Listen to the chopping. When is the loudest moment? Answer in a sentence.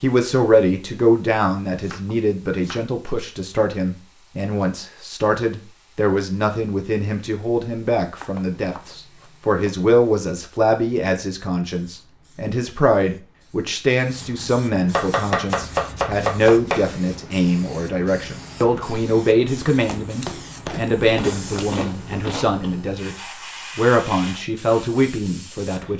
The volume of the chopping peaks at 16 seconds.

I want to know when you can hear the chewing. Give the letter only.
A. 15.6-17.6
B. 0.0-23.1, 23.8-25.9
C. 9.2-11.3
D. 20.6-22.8
D.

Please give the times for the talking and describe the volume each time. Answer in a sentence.
The talking can be heard from 0.0 to 23.1 s, at a steady volume; and briefly from 23.8 to 25.9 s.